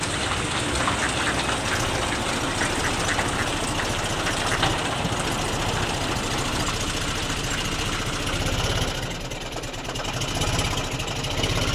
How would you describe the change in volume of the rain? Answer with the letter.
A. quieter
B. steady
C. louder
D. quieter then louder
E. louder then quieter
A.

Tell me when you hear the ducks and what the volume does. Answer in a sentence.
You can hear the ducks from 0.6 to 6.7 s, at a steady volume.